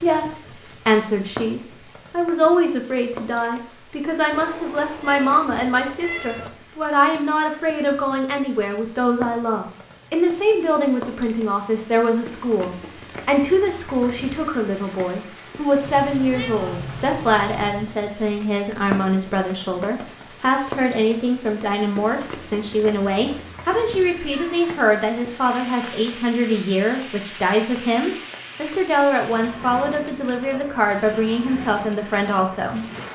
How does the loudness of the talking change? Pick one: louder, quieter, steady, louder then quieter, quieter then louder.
steady.